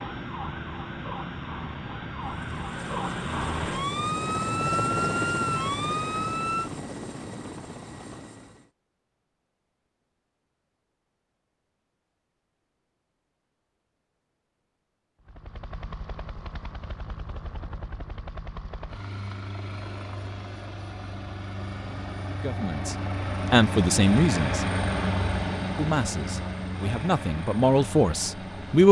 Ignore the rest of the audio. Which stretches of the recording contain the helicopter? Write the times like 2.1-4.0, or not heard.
0.0-8.7, 15.2-28.8.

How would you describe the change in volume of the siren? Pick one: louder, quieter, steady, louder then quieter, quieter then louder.
louder.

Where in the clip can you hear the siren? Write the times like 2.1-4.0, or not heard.
0.0-6.7.